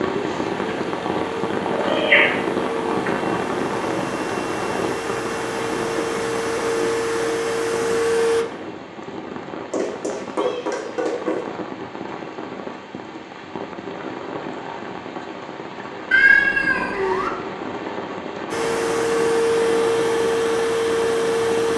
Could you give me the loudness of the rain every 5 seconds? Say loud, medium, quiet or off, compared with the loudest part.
loud, medium, medium, medium, medium.